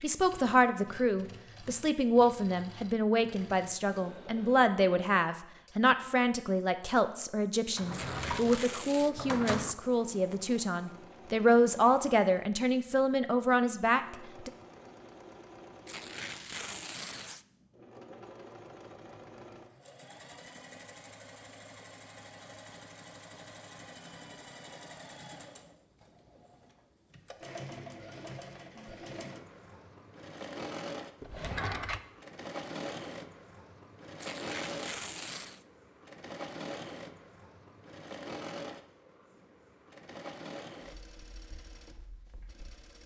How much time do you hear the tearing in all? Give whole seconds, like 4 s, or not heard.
4 s.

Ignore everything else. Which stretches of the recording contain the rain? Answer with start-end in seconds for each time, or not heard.
not heard.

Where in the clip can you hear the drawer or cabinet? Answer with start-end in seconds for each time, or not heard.
7.8-9.8, 31.2-32.0.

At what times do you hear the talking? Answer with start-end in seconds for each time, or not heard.
0.0-14.5.